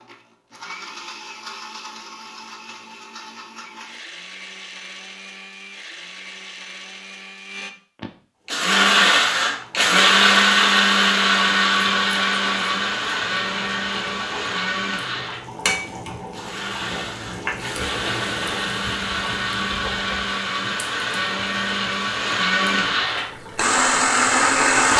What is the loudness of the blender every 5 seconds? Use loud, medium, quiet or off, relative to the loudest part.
quiet, loud, loud, medium, loud.